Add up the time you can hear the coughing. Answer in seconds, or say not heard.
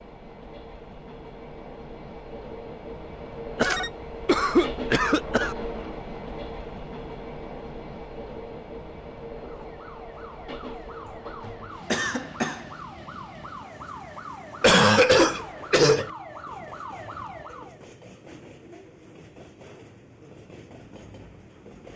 5 s.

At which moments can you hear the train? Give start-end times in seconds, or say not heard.
0.0-21.9.